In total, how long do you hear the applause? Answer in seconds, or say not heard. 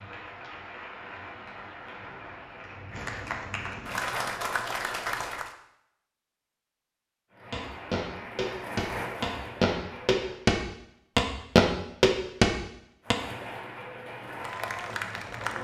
11 s.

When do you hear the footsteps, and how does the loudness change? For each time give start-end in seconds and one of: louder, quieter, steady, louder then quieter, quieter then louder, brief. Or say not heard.
7.5-13.2 louder.